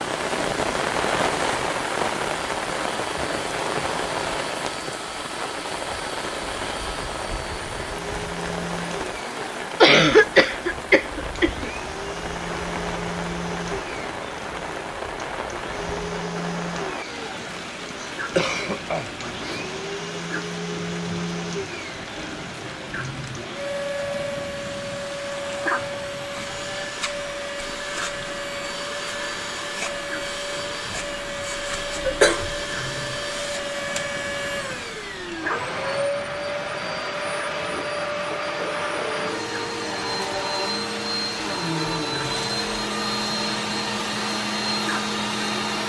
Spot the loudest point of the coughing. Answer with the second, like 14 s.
10 s.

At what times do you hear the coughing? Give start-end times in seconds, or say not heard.
9.8-11.7, 18.3-19.6, 32.0-32.5.